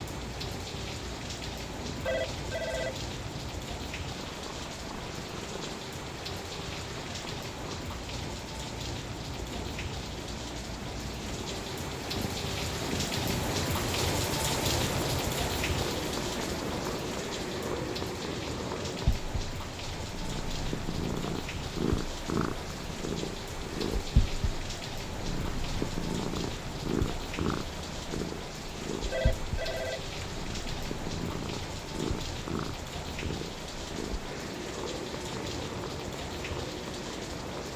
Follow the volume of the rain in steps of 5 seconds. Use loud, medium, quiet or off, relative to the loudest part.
medium, medium, loud, loud, medium, medium, medium, medium.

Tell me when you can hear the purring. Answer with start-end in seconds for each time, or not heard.
0.0-37.7.